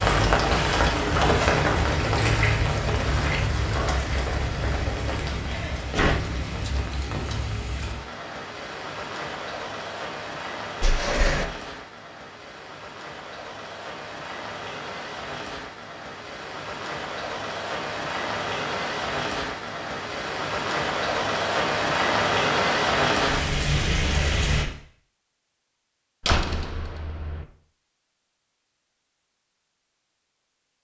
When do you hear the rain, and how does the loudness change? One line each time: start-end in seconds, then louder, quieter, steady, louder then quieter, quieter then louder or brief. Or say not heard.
0.0-24.6 quieter then louder.